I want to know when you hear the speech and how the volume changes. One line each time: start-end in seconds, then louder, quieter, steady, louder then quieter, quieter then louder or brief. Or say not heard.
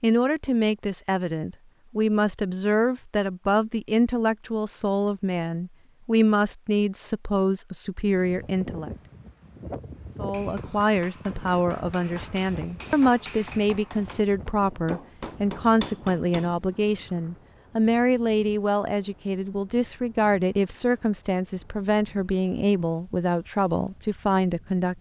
0.0-8.9 steady
10.2-24.9 steady.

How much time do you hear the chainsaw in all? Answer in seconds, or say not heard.
not heard.